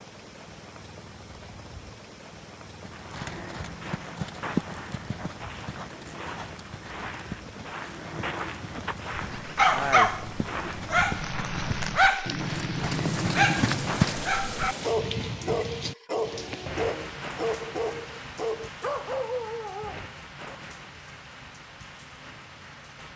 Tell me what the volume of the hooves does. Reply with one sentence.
The volume of the hooves goes down, then up.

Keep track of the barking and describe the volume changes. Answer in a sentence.
The volume of the barking goes down.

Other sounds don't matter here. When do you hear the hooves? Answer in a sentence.
The hooves can be heard from 2.8 to 14.4 s.